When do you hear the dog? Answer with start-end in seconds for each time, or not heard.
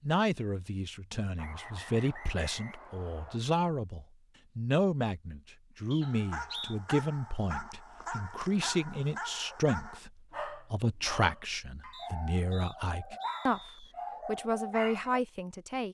6.0-15.2.